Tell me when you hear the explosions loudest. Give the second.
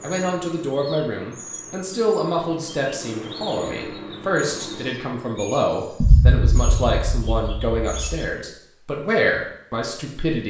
6 s.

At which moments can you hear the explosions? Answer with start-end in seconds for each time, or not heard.
6.0-8.2.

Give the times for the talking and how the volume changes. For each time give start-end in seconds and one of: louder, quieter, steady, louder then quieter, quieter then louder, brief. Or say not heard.
0.0-10.4 steady.